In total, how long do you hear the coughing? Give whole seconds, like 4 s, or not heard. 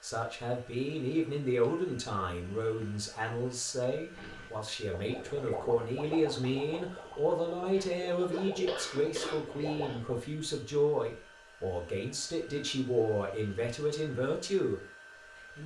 2 s.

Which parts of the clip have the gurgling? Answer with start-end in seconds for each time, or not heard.
4.1-10.2.